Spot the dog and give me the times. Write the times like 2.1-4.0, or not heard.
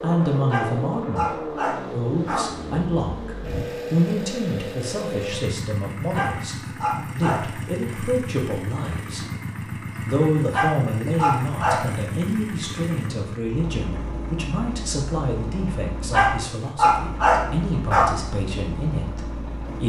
0.5-2.6, 6.1-8.0, 10.5-11.9, 16.1-18.1.